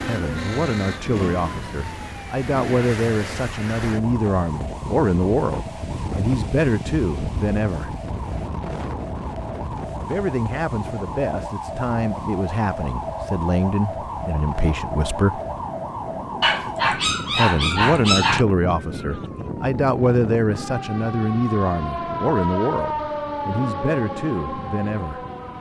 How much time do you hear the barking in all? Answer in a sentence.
The barking can be heard for 2 seconds in total.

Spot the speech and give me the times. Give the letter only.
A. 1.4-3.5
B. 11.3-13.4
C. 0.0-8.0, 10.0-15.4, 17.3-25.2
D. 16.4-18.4
C.